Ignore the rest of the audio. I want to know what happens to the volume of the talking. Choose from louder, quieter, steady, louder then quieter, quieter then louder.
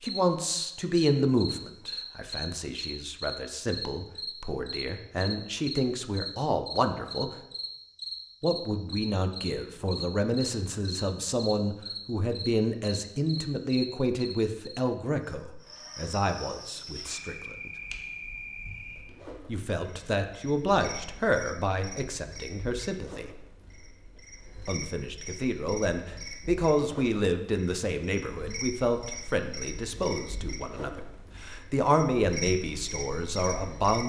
steady.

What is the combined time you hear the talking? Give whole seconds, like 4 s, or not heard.
30 s.